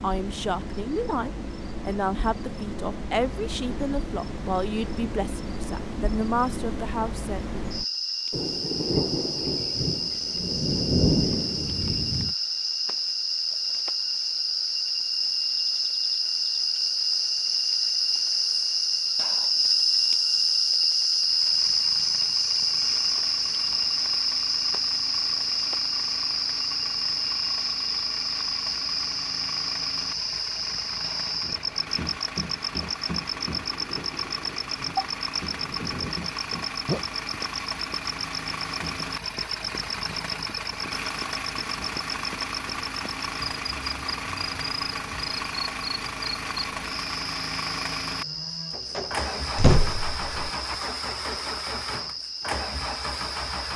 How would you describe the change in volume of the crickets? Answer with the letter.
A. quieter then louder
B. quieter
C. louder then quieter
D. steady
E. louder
C.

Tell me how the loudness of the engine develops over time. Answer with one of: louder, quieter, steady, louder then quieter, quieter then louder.
louder.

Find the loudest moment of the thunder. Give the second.
11 s.